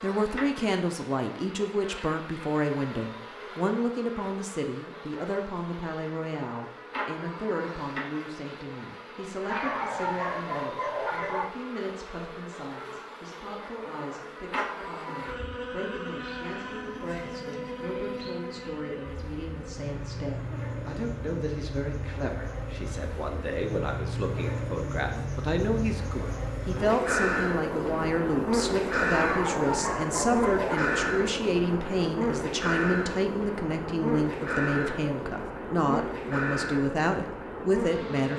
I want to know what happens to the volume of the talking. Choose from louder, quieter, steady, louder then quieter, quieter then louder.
quieter then louder.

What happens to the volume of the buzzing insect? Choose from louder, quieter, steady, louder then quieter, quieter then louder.
louder.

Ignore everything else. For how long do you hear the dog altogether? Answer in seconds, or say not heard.
4 s.